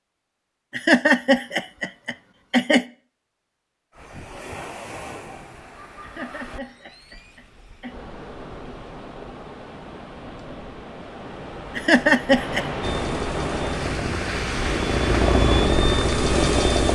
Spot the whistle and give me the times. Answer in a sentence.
The whistle can't be heard in this clip.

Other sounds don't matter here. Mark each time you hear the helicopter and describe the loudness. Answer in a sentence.
You can hear the helicopter from 12.8 to 16.9 s, getting louder.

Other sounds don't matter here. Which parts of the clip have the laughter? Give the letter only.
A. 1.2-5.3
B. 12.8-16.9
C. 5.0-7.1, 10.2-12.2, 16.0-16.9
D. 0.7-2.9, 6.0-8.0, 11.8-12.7
D.